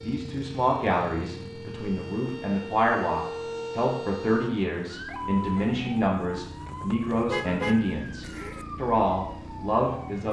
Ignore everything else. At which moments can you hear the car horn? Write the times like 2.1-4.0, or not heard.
7.3-8.7.